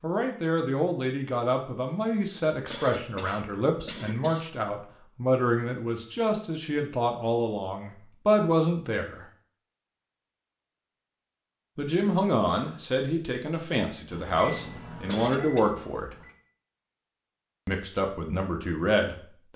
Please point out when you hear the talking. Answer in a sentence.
You can hear the talking from 0.0 to 9.2 s, from 11.8 to 16.1 s and from 17.6 to 19.5 s.